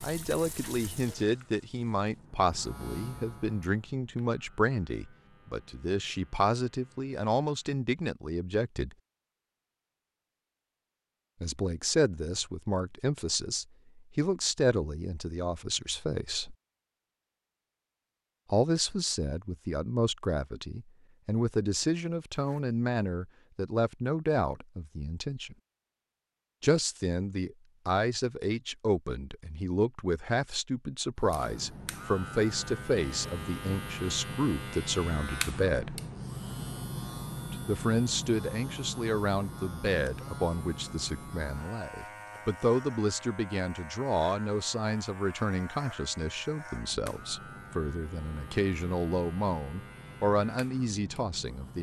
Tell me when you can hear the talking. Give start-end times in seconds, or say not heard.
0.0-8.9, 11.4-16.6, 18.5-25.6, 26.6-36.0, 37.5-51.7.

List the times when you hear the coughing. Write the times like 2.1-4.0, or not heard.
not heard.